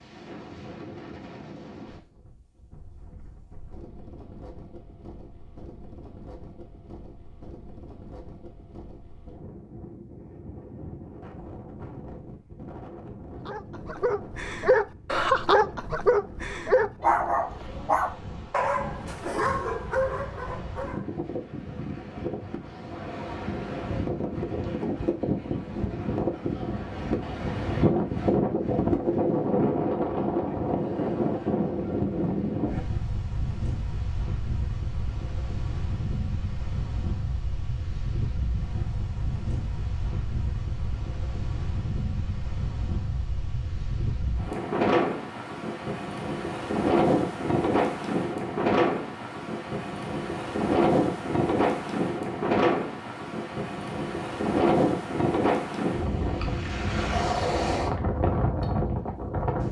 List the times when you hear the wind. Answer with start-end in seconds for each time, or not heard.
0.0-59.6.